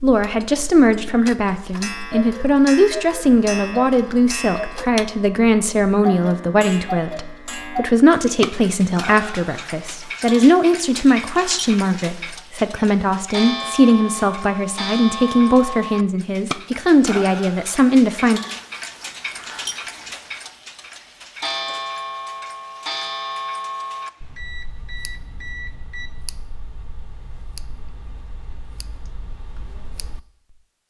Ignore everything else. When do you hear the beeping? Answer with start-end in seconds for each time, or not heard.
24.1-26.1.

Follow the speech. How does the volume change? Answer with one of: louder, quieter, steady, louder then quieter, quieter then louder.
steady.